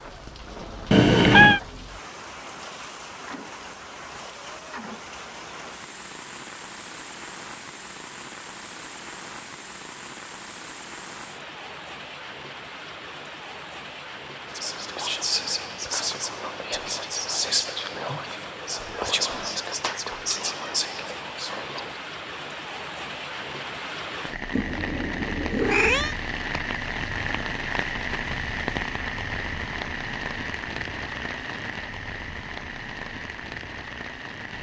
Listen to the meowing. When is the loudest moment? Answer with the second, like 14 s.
1 s.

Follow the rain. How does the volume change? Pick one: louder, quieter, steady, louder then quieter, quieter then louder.
louder.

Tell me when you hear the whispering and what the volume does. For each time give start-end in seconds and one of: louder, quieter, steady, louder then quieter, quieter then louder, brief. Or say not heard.
14.4-22.0 steady.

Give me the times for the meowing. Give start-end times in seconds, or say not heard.
0.9-1.6, 19.7-20.6, 24.5-26.1.